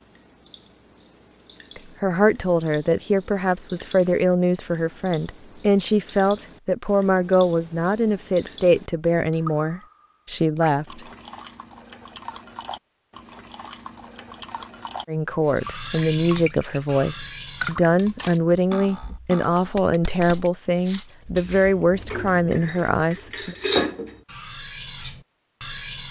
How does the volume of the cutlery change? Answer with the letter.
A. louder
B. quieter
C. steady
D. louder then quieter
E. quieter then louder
E.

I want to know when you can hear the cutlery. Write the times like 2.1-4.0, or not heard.
15.6-26.0.